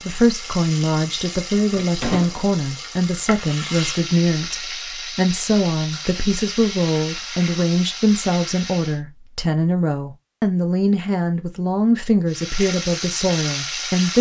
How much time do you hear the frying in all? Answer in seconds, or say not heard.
11 s.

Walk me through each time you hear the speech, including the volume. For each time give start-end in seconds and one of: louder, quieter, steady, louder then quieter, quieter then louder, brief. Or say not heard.
0.0-14.1 steady.